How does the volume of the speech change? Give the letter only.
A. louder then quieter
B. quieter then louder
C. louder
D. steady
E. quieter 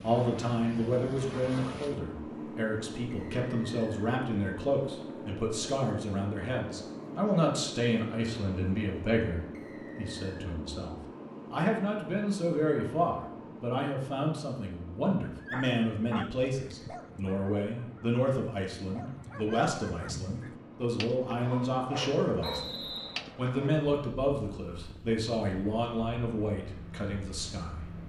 D.